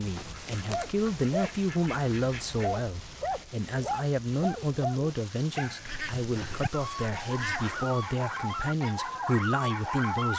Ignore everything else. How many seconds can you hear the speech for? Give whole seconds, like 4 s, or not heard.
10 s.